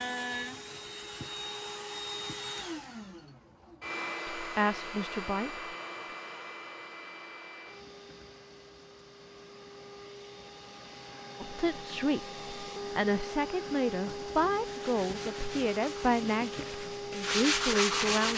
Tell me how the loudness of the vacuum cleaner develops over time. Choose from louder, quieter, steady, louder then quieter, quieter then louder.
quieter then louder.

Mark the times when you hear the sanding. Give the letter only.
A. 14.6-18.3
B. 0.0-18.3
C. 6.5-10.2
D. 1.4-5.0
A.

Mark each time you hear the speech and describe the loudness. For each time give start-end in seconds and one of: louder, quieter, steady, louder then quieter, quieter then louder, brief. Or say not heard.
4.3-5.7 brief
11.4-18.3 steady.